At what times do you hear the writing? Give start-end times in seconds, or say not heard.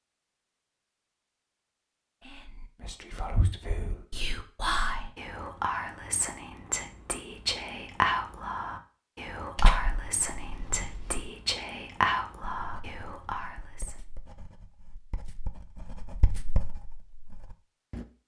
12.6-18.1.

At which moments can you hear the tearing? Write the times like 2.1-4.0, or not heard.
9.6-11.3.